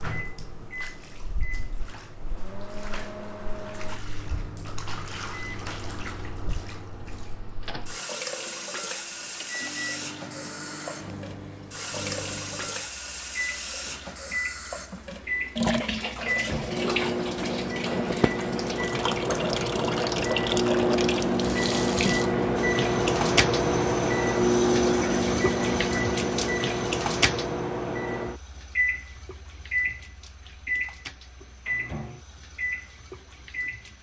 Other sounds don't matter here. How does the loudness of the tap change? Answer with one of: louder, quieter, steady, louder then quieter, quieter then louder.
louder then quieter.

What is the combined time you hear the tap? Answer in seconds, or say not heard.
34 s.